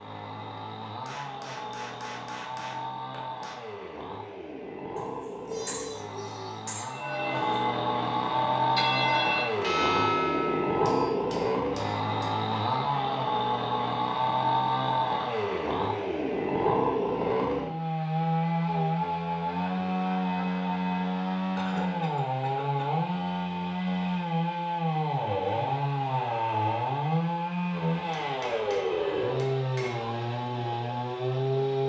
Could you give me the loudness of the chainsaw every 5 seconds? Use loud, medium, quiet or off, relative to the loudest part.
medium, loud, loud, loud, loud, loud, loud.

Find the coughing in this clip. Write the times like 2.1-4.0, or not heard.
5.0-7.6, 21.6-23.0.